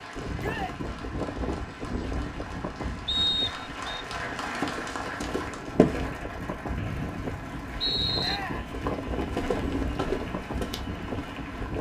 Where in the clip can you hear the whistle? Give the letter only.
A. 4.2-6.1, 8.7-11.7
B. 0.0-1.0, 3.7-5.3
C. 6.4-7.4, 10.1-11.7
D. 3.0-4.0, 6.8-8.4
D.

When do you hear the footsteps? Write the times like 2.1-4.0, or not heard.
4.2-6.1, 8.7-11.7.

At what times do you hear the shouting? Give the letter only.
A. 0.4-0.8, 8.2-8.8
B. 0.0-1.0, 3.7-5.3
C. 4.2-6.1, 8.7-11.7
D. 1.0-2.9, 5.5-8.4
A.